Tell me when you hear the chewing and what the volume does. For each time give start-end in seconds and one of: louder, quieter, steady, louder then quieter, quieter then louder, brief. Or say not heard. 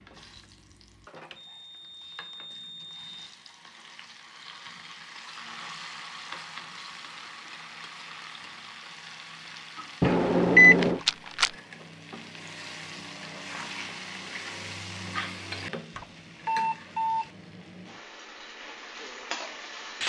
not heard.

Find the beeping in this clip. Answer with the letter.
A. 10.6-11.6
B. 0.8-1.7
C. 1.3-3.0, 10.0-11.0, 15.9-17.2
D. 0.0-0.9
C.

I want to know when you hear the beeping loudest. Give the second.
11 s.